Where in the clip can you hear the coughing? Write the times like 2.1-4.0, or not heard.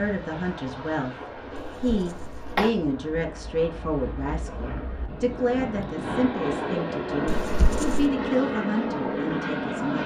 1.6-2.7, 7.2-8.1.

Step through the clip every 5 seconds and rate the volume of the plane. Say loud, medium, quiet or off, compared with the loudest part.
medium, loud.